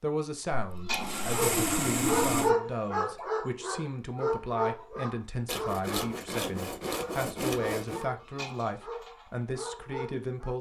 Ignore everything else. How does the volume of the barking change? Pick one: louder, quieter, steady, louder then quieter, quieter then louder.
quieter.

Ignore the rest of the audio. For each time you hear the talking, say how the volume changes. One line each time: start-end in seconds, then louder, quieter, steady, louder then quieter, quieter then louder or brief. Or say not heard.
0.0-10.5 steady.